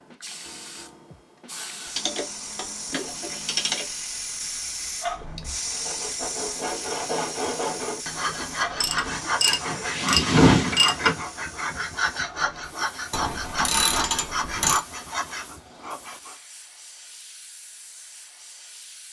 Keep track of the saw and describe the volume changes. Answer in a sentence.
The volume of the saw stays about the same.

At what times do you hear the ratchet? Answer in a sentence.
You can hear the ratchet from 1.9 to 3.9 s, from 8.8 to 11.2 s and from 13.1 to 14.8 s.